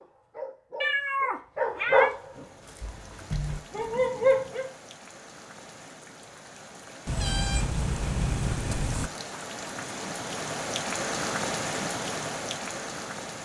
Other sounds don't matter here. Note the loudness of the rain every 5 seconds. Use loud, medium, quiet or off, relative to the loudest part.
quiet, medium, loud.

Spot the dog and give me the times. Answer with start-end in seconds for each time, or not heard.
0.0-4.7.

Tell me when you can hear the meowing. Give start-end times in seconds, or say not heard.
0.8-2.1, 7.0-9.1.